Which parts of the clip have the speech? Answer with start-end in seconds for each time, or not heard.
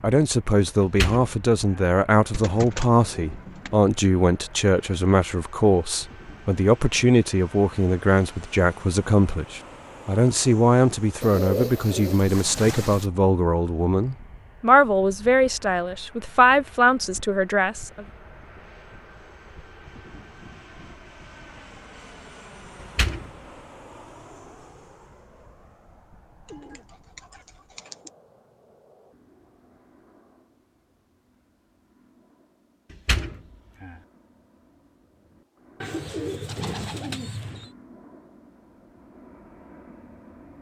0.0-18.1.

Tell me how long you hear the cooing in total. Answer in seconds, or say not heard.
7 s.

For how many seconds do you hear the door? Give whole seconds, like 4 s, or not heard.
3 s.